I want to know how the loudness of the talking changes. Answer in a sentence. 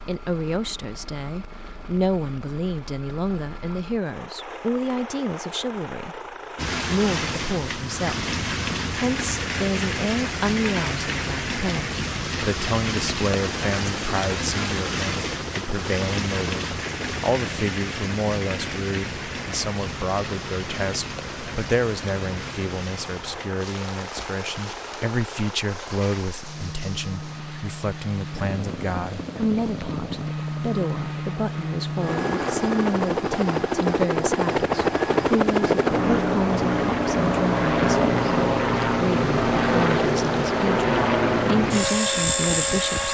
The loudness of the talking stays about the same.